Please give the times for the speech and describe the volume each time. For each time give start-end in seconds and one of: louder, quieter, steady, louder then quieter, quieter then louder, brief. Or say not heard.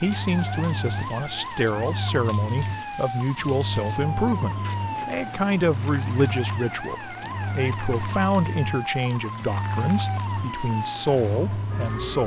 0.0-12.2 steady.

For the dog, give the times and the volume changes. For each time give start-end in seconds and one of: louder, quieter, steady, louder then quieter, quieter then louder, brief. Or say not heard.
not heard.